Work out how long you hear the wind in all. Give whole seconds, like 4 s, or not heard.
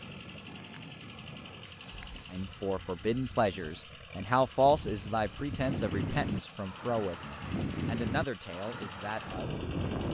10 s.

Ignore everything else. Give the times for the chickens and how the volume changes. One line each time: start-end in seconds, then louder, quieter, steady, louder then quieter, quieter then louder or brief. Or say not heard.
not heard.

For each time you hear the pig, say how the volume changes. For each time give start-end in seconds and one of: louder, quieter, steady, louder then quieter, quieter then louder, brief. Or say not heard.
not heard.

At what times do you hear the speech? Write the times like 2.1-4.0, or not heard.
2.3-9.6.